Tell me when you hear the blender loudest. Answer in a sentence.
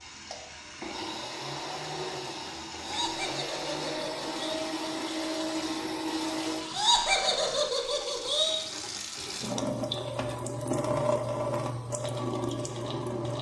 The loudest moment of the blender is at 6 seconds.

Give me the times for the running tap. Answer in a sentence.
You can hear the running tap from 0.0 to 13.3 s.